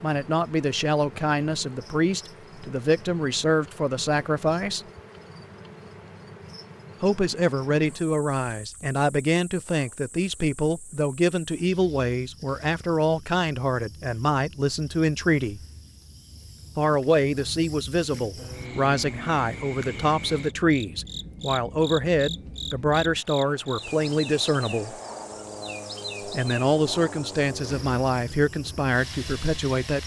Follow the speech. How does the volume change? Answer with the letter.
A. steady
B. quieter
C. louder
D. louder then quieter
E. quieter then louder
A.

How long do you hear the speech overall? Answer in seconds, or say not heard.
25 s.